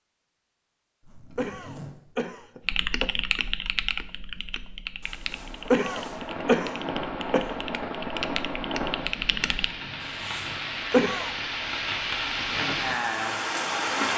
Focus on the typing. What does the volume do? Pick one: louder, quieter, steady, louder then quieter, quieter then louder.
quieter then louder.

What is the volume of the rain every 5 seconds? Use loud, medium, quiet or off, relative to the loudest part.
off, medium, loud.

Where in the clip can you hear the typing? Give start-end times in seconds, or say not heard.
2.6-9.8.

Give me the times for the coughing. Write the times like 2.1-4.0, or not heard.
1.4-3.1, 5.7-7.5, 10.9-11.3.